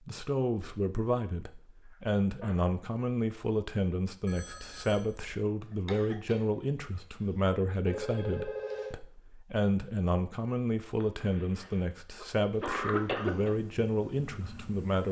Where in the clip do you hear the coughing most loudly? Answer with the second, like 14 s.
13 s.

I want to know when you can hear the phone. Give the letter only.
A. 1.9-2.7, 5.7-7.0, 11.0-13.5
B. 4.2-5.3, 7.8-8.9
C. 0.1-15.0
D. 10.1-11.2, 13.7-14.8
B.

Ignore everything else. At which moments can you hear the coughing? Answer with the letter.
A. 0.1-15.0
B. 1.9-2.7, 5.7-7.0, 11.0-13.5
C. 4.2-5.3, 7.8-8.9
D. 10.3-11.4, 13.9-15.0
B.